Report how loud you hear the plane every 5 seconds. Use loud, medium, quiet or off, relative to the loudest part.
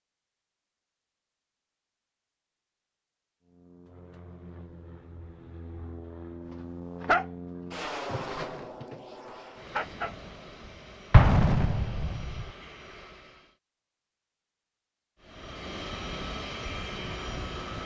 quiet, loud, medium, loud.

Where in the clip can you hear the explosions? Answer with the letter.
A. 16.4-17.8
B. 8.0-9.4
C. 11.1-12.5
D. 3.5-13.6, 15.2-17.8
C.